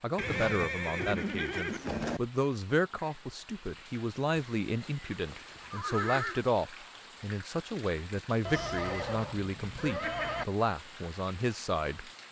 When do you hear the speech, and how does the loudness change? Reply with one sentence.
You can hear the speech from 0.0 to 12.1 s, at a steady volume.